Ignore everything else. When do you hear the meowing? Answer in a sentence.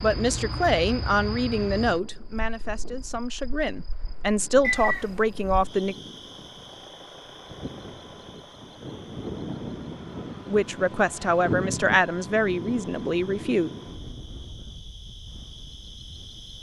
The meowing can be heard from 4.6 to 5.7 s.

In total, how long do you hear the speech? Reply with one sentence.
You can hear the speech for 9 seconds altogether.